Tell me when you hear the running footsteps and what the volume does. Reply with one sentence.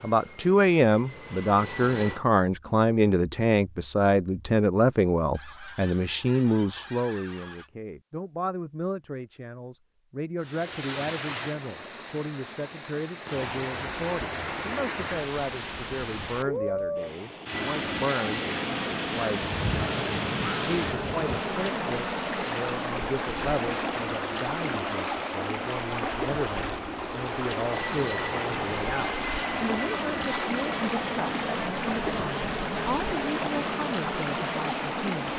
You can't hear the running footsteps here.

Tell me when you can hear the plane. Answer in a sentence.
You can hear the plane from 0.0 to 2.2 s and from 17.4 to 35.3 s.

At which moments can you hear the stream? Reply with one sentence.
The stream can be heard from 10.4 to 35.3 s.